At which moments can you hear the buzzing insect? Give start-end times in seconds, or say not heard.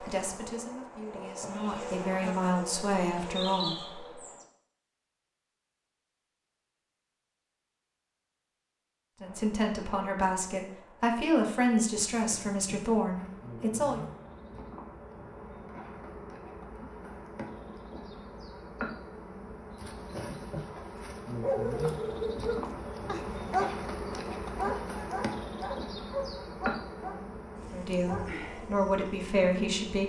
0.0-4.5, 9.2-30.0.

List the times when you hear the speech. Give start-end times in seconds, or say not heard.
0.0-4.1, 9.2-14.0, 27.7-30.0.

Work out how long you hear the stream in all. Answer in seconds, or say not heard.
not heard.